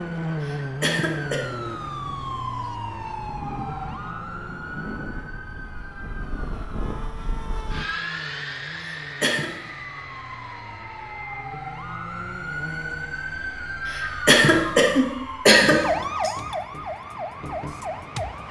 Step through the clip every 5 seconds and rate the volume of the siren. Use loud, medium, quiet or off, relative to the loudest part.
loud, quiet, loud, loud.